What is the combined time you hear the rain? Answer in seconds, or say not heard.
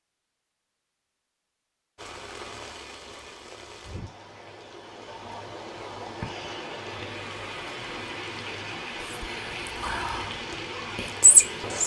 10 s.